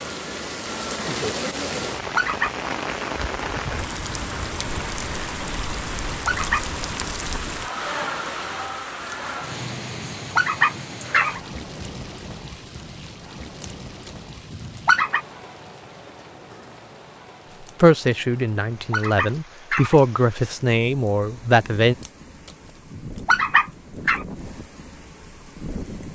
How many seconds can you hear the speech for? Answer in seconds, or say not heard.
4 s.